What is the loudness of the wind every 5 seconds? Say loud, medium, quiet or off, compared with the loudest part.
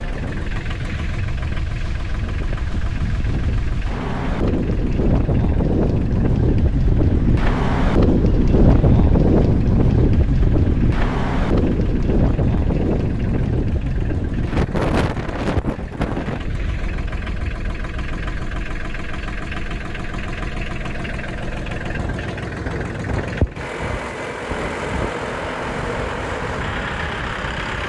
medium, loud, loud, medium, quiet, quiet.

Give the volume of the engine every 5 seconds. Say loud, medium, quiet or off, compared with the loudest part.
medium, quiet, quiet, medium, loud, loud.